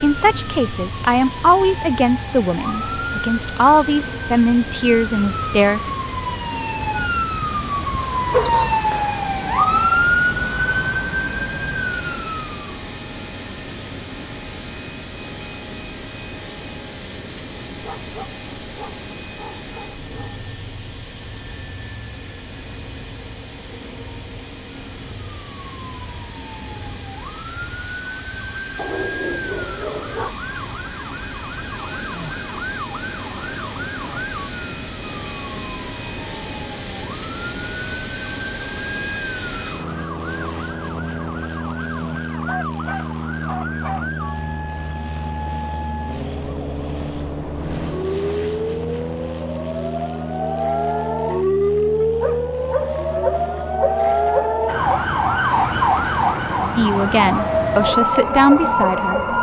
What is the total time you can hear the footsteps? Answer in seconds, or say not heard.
not heard.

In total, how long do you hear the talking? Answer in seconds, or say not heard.
8 s.